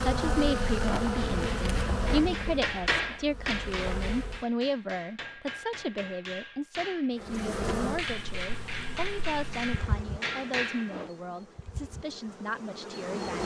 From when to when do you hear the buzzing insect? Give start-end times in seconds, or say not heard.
0.0-4.5, 7.2-13.4.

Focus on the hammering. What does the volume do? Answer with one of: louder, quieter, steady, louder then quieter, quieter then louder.
quieter then louder.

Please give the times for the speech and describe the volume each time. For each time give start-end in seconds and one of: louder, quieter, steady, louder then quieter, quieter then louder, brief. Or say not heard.
0.0-13.4 quieter.